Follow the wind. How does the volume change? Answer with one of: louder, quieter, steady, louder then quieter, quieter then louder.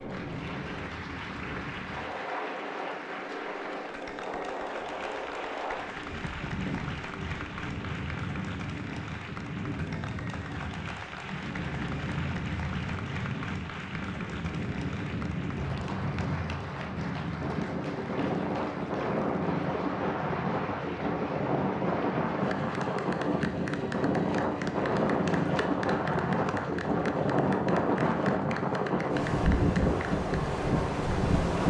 louder.